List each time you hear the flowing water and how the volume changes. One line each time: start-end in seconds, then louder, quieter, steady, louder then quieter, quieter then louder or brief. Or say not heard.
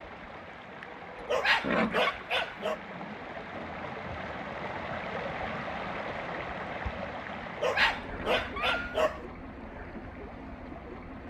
0.0-11.2 louder then quieter.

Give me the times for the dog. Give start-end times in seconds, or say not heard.
1.2-2.8, 7.6-9.2.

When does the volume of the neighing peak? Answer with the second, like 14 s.
2 s.